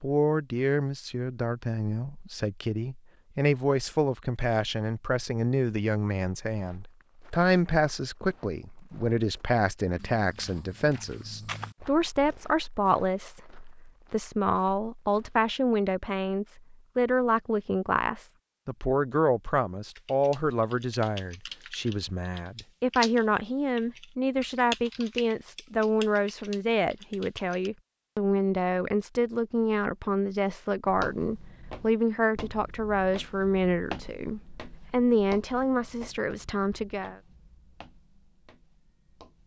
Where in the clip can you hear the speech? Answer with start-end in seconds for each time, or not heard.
0.0-13.4, 14.0-37.1.